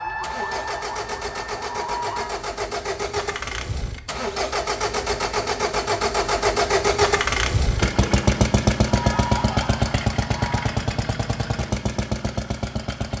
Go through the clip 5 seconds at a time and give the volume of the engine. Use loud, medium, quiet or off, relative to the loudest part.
medium, loud, medium.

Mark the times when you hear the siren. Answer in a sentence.
You can hear the siren from 0.0 to 2.5 s and from 8.8 to 10.8 s.